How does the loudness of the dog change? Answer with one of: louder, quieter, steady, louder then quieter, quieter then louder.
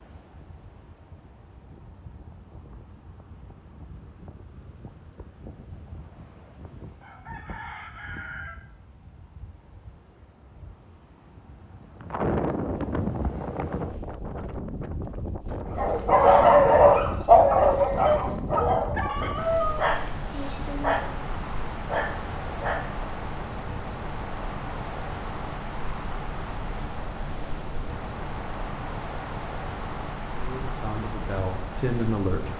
quieter.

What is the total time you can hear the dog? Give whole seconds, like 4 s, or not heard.
7 s.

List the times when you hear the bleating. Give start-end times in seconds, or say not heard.
not heard.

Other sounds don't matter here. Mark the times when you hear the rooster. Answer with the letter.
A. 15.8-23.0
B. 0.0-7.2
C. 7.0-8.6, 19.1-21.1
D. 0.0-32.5
C.